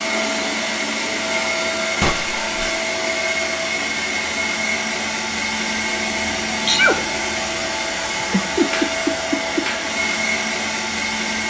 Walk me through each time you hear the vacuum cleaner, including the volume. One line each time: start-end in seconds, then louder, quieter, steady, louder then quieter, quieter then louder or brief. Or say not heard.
0.0-11.4 steady.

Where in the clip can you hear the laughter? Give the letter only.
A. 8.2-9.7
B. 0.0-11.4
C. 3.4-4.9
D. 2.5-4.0
A.